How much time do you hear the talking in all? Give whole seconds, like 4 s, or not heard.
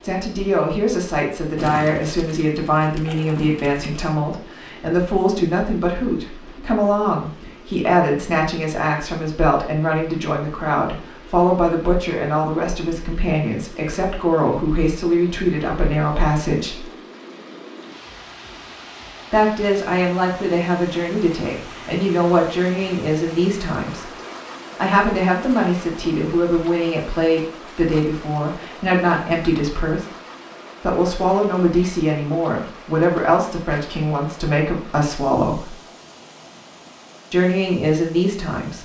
33 s.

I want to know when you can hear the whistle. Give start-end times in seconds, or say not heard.
not heard.